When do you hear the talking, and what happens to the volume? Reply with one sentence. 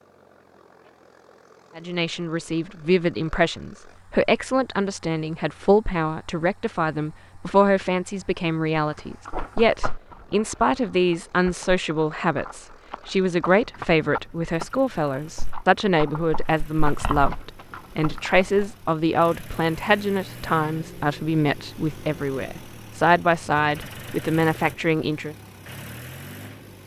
The talking can be heard from 1.8 to 25.4 s, at a steady volume.